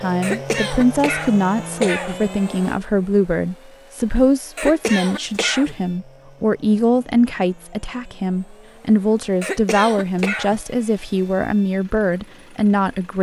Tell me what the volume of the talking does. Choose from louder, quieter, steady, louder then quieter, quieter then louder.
steady.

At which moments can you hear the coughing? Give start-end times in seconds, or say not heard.
0.2-2.2, 4.5-5.8, 9.4-10.6.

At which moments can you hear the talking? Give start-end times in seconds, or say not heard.
0.0-13.1.